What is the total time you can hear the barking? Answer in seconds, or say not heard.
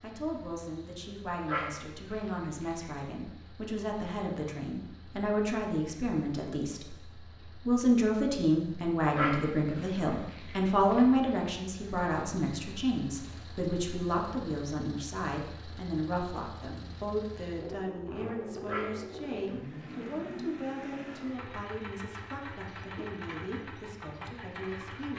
5 s.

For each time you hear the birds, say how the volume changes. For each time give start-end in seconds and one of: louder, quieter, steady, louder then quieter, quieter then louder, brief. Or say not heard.
not heard.